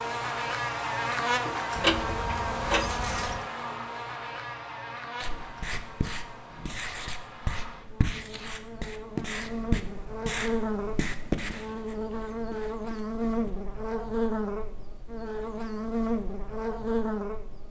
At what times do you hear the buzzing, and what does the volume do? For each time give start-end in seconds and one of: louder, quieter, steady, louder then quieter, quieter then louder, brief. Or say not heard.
0.0-17.6 quieter then louder.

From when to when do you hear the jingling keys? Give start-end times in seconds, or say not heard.
1.8-3.5.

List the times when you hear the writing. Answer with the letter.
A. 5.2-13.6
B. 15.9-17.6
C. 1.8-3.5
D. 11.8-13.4
A.